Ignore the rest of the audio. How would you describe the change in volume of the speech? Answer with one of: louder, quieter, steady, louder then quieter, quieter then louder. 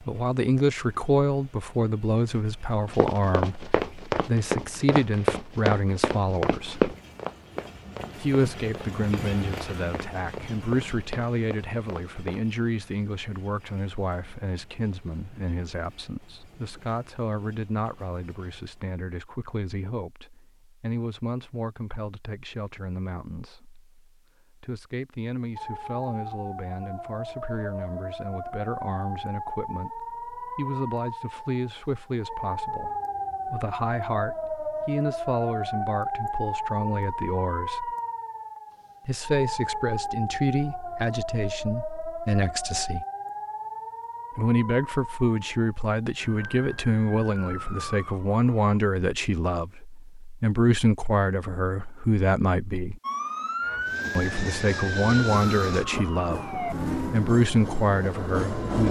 quieter then louder.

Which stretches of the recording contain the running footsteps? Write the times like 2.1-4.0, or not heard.
2.9-12.4.